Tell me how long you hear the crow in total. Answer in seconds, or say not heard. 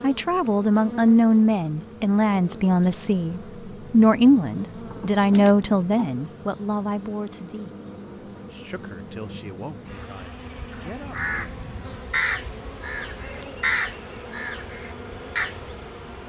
5 s.